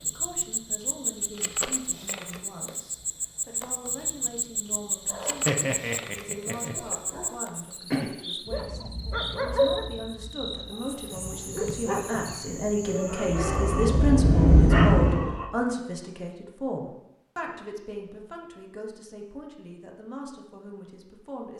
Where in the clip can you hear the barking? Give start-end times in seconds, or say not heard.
5.0-15.5.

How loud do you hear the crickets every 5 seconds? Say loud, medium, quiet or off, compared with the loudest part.
loud, loud, medium, off, off.